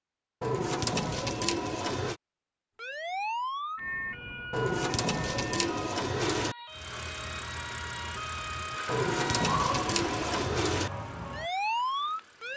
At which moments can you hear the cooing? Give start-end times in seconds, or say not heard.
0.4-2.1, 4.5-6.5, 8.8-10.9.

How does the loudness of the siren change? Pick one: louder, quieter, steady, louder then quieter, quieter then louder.
quieter then louder.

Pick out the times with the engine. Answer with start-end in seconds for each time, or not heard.
6.7-12.5.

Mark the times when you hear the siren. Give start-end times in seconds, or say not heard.
2.8-12.5.